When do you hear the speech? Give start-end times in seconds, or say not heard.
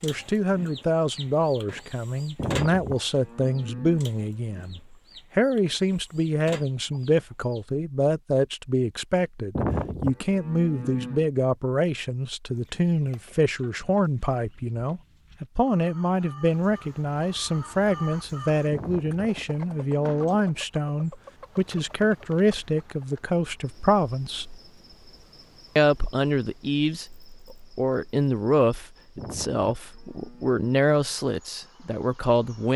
0.0-24.6, 25.8-32.7.